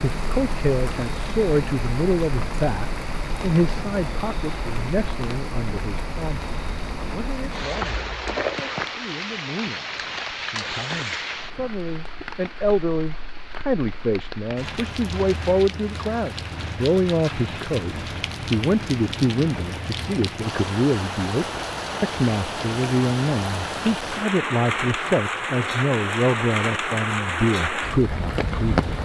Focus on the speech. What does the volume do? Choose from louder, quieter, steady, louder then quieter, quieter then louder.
quieter then louder.